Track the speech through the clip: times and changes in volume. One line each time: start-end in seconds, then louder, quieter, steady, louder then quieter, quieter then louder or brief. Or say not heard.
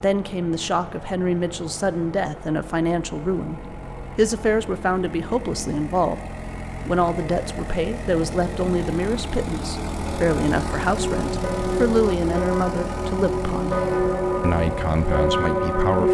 0.0-13.8 steady
14.4-16.0 brief.